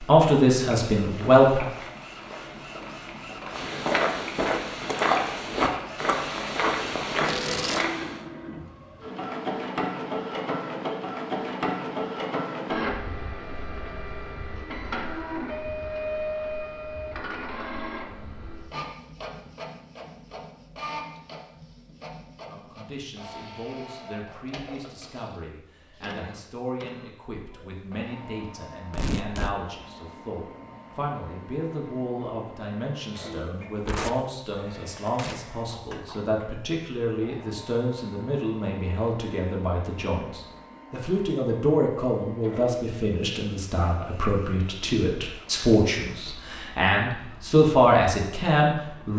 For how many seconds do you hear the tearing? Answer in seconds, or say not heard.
3 s.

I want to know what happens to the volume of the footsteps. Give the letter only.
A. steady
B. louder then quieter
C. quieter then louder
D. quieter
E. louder
E.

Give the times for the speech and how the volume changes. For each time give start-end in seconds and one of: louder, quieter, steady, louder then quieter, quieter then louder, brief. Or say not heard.
0.0-1.6 brief
22.4-49.1 louder.